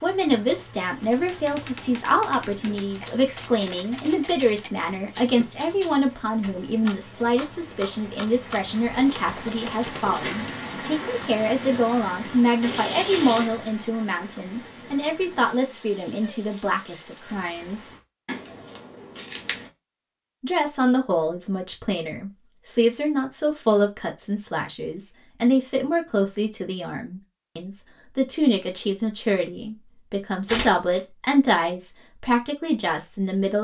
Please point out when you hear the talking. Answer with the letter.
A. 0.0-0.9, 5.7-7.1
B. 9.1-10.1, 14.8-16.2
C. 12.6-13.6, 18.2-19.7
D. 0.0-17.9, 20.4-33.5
D.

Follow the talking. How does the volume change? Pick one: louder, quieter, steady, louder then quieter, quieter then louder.
steady.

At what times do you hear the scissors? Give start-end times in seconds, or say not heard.
12.6-13.6, 18.2-19.7.